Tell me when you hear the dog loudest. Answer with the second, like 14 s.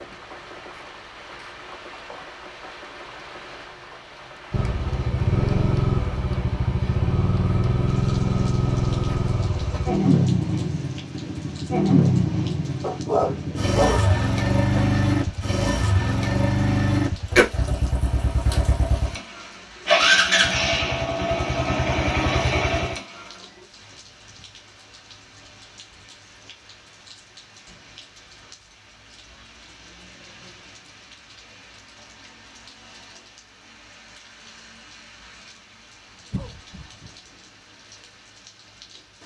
13 s.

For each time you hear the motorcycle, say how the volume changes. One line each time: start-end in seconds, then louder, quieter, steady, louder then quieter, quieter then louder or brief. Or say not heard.
4.5-23.3 steady.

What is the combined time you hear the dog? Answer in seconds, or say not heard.
2 s.